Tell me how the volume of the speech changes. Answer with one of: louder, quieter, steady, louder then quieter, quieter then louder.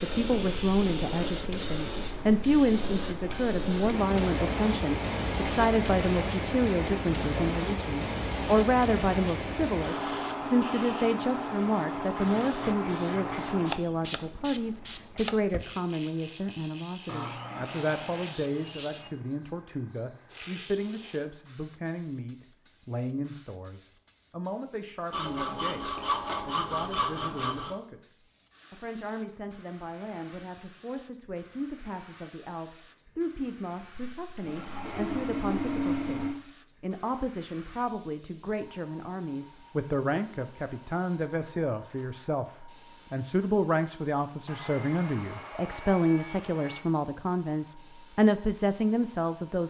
quieter then louder.